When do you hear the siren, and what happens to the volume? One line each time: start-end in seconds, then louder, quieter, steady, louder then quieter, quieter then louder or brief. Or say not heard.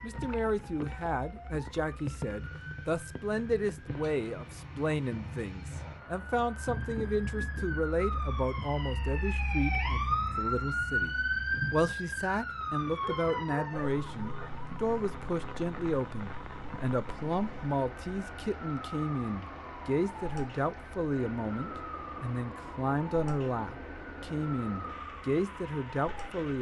0.0-26.4 louder then quieter.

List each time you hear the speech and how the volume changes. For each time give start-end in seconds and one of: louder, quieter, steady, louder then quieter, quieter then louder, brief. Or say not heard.
0.0-26.5 steady.